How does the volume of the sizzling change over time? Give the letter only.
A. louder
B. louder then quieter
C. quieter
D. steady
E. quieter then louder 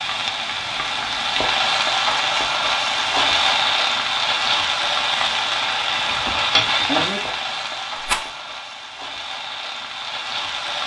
C.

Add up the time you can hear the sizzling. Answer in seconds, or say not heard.
11 s.